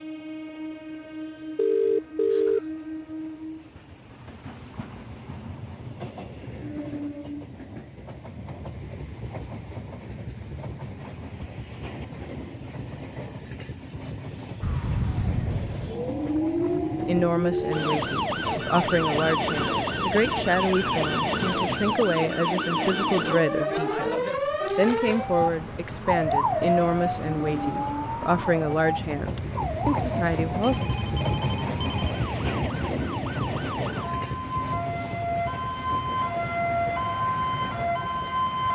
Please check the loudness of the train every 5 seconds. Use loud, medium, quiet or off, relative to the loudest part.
medium, medium, medium, medium, medium, medium, loud, medium.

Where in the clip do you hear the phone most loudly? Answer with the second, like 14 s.
2 s.